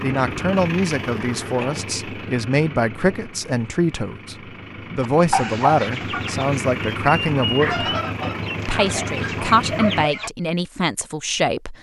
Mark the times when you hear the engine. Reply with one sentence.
You can hear the engine from 0.0 to 10.1 s.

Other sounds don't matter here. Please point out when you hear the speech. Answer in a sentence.
The speech can be heard from 0.0 to 7.9 s and from 8.7 to 11.7 s.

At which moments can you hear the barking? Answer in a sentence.
You can't hear the barking here.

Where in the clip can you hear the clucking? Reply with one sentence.
You can hear the clucking from 5.0 to 10.3 s.